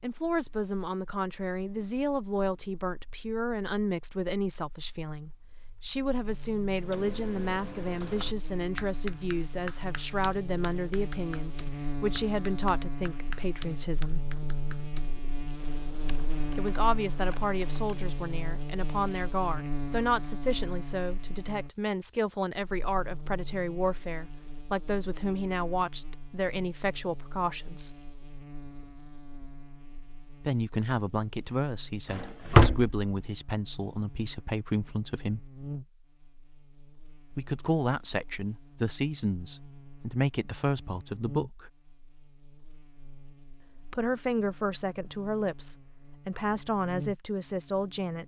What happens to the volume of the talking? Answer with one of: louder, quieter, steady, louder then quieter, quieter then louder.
steady.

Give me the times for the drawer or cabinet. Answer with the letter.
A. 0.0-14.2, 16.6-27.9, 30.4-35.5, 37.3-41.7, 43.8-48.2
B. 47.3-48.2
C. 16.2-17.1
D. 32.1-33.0
D.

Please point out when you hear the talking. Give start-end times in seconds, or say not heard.
0.0-14.2, 16.6-27.9, 30.4-35.5, 37.3-41.7, 43.8-48.2.